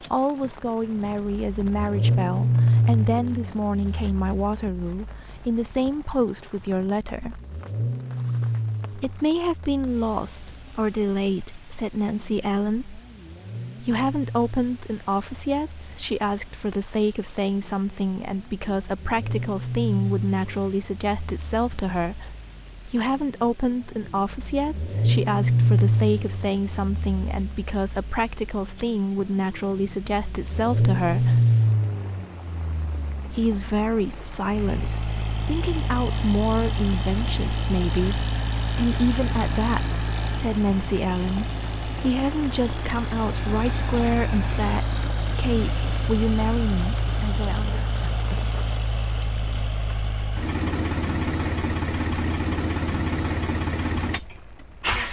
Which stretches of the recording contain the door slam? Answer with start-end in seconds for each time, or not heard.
not heard.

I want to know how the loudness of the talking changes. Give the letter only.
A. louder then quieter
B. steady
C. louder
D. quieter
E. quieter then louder
B.